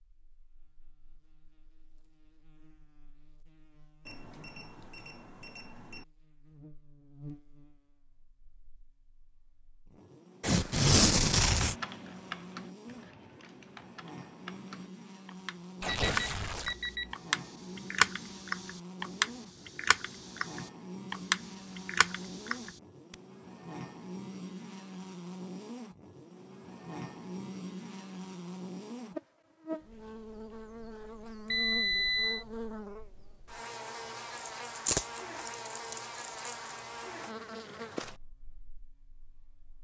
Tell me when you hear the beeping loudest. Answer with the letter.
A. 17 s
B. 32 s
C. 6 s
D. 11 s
B.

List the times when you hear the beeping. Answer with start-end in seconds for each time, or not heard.
4.0-6.0, 15.8-17.1, 31.4-32.5.